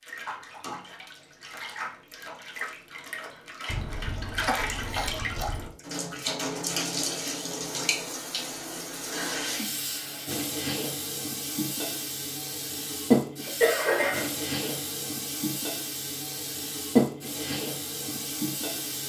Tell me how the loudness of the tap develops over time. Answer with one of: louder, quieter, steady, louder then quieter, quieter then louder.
louder.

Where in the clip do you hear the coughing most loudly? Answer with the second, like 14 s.
14 s.